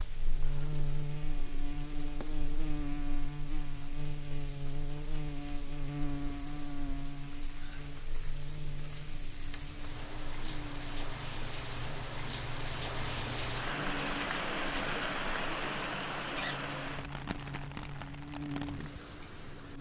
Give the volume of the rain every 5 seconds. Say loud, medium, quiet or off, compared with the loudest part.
quiet, quiet, loud, loud.